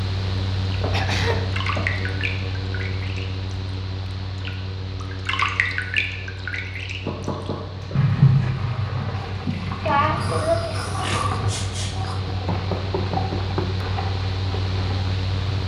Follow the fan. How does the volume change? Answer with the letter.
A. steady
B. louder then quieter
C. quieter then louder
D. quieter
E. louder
C.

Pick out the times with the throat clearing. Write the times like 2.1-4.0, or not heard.
0.9-1.4, 9.4-12.2.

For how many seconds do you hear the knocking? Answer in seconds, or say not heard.
4 s.